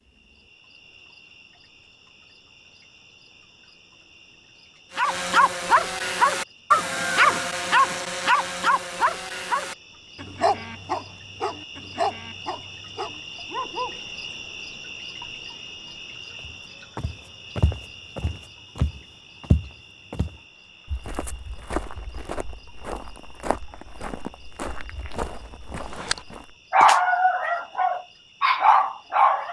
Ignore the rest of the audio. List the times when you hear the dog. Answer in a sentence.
The dog can be heard from 5.0 to 14.0 s and from 25.9 to 29.4 s.